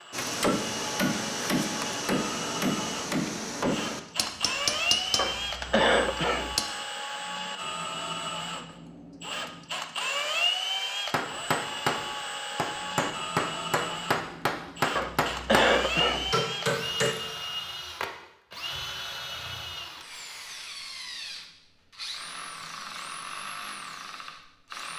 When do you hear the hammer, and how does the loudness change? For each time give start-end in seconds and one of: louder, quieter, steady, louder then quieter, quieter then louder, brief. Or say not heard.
0.1-6.7 quieter
11.1-17.1 steady.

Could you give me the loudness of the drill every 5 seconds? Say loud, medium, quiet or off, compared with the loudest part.
loud, loud, loud, loud, medium.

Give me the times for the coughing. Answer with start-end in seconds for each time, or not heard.
5.2-6.6, 14.9-16.4.